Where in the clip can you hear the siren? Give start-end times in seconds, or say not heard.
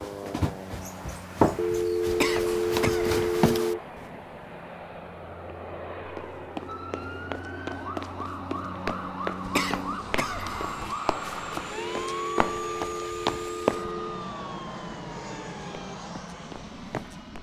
6.7-16.0.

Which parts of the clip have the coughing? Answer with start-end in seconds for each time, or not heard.
2.1-3.5, 9.4-10.9.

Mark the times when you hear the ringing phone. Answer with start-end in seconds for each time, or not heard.
1.6-3.8, 11.8-14.3.